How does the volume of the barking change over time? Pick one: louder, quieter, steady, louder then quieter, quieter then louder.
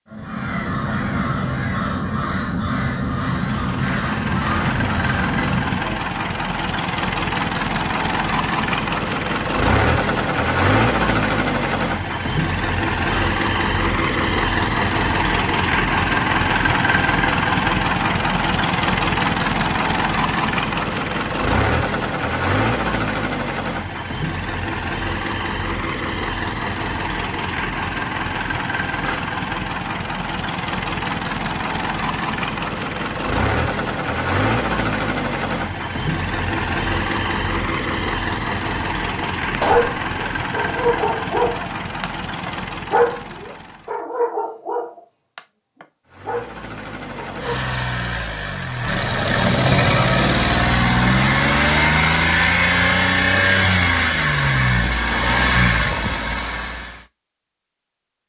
quieter.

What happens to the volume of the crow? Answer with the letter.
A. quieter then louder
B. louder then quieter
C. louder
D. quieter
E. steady
E.